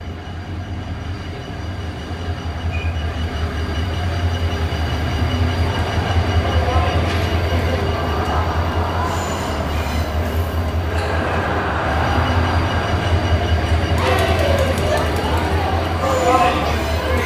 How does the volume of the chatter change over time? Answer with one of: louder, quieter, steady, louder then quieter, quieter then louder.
louder.